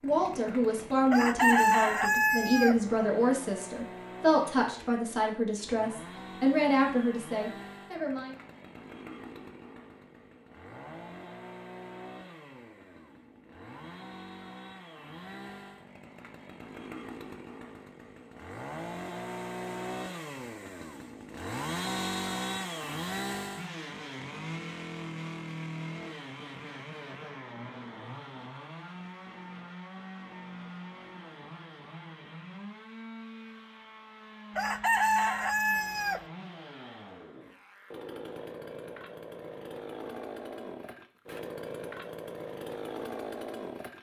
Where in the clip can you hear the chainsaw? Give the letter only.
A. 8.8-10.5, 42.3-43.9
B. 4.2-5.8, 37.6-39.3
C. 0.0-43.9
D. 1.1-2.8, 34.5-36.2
C.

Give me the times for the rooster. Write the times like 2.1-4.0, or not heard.
1.1-2.8, 34.5-36.2.